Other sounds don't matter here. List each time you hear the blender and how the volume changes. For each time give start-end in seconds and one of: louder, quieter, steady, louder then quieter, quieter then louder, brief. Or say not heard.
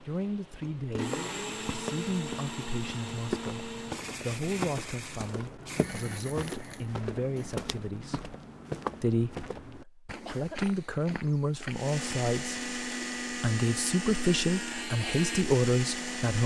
0.0-7.5 quieter
11.7-16.4 steady.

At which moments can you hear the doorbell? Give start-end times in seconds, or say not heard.
not heard.